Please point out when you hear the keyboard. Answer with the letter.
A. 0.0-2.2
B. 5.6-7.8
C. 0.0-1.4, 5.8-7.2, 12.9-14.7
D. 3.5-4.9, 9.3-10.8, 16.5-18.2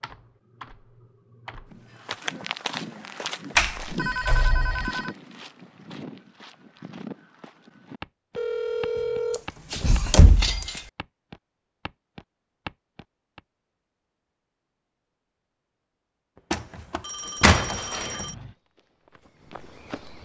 A.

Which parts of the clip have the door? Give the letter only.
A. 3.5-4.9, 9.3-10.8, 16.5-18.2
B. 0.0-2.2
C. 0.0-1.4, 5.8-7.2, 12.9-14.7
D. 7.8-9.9
A.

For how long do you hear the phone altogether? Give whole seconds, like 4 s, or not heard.
5 s.